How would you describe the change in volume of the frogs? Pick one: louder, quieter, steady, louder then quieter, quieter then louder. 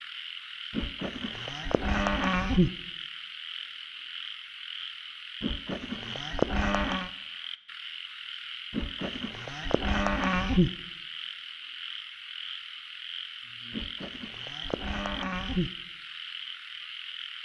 steady.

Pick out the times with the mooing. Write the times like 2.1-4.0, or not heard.
0.7-2.7, 5.4-7.1, 8.7-10.7, 13.7-15.7.